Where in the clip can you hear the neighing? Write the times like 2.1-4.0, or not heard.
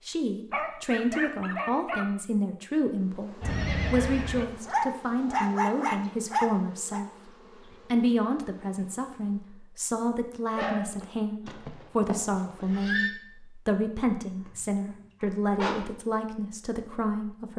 3.4-4.5, 11.4-13.1.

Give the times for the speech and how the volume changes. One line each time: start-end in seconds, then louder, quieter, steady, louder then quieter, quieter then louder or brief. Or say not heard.
0.1-17.5 steady.